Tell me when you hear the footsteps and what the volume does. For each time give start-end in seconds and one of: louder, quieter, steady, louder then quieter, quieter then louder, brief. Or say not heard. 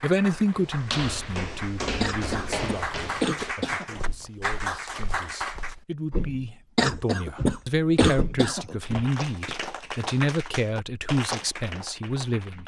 0.6-9.6 quieter then louder.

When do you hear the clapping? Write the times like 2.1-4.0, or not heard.
0.0-5.8, 8.8-12.6.